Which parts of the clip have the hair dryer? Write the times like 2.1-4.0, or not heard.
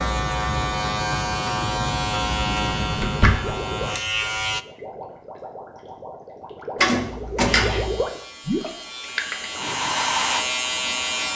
9.5-11.3.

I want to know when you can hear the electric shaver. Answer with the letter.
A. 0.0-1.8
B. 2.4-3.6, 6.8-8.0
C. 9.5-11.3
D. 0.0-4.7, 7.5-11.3
D.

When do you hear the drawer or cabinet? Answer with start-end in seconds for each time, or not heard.
2.4-3.6, 6.8-8.0.